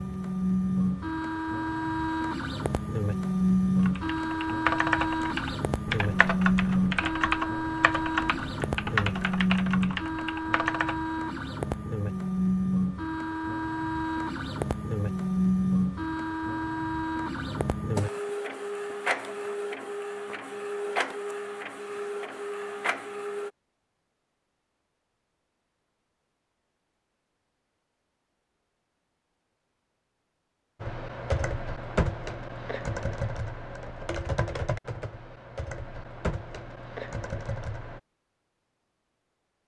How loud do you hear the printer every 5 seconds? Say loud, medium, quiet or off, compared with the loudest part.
loud, loud, loud, loud, medium, off, off, off.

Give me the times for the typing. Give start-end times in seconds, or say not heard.
3.8-11.0, 30.8-38.0.